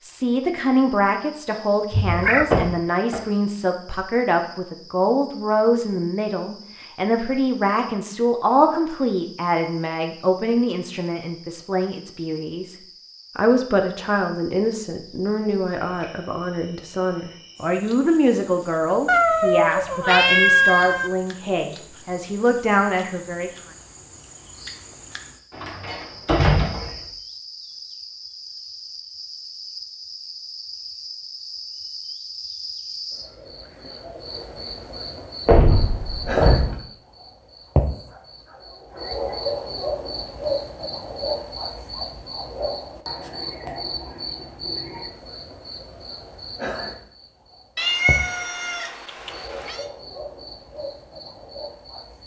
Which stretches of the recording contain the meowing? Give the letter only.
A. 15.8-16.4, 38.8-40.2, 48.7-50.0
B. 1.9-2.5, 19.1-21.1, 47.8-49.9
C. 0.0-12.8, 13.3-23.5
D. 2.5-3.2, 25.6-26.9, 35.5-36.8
B.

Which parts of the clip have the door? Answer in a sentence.
The door can be heard from 2.5 to 3.2 s, from 25.6 to 26.9 s and from 35.5 to 36.8 s.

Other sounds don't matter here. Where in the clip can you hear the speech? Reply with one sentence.
The speech can be heard from 0.0 to 12.8 s and from 13.3 to 23.5 s.